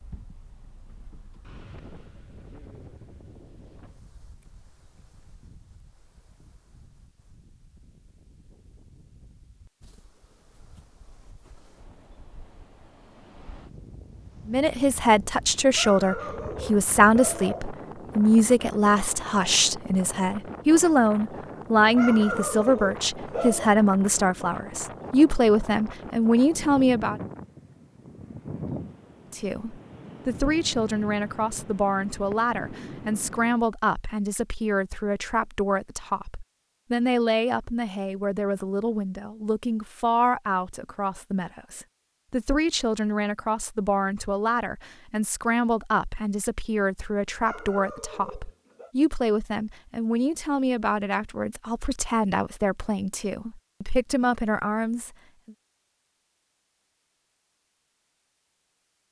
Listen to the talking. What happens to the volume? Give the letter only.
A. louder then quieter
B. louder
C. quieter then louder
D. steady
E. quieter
E.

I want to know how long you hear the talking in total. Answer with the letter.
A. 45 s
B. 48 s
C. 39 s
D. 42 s
C.